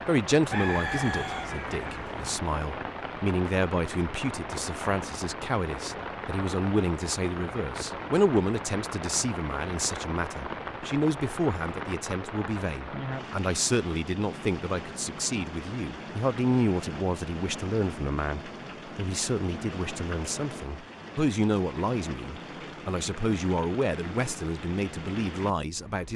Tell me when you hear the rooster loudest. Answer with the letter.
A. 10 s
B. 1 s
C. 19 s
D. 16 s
B.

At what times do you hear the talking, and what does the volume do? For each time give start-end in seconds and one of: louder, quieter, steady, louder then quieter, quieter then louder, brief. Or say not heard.
0.1-26.1 steady.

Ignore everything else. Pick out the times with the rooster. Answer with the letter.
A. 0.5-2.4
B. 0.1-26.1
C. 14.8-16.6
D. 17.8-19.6
A.